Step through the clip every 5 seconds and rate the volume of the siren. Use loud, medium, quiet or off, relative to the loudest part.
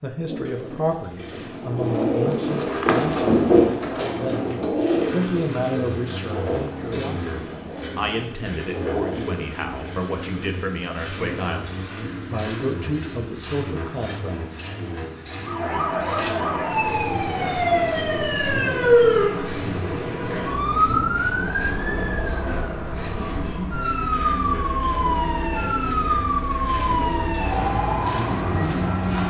off, off, off, loud, loud, loud.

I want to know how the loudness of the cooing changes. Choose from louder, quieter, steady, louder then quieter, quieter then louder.
louder then quieter.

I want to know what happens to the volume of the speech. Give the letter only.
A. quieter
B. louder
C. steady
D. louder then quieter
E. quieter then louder
C.